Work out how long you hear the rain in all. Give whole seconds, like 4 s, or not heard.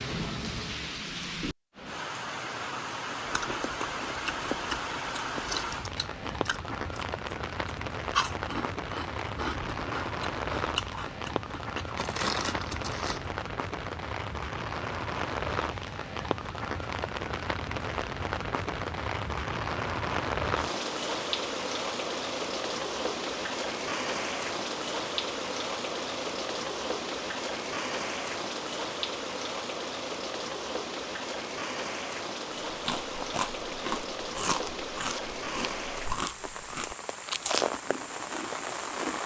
39 s.